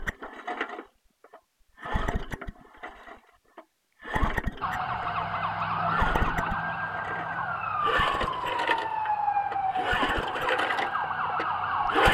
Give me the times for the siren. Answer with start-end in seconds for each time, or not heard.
4.6-12.0.